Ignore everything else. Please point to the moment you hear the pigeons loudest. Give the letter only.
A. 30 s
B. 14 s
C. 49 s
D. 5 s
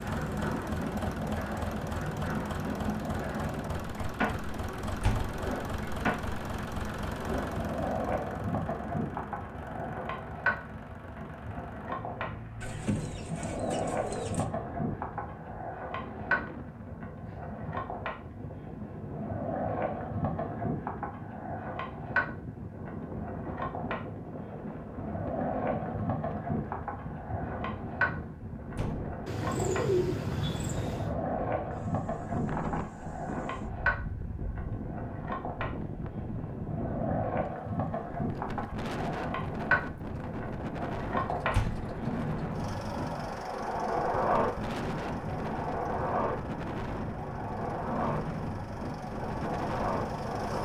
A.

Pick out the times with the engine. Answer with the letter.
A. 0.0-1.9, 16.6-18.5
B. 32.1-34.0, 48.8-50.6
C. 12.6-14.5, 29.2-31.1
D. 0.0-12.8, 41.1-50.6
D.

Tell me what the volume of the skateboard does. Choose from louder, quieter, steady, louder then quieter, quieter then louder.
steady.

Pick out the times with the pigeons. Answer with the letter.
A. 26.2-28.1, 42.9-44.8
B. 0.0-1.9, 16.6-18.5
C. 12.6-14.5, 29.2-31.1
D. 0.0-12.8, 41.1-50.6
C.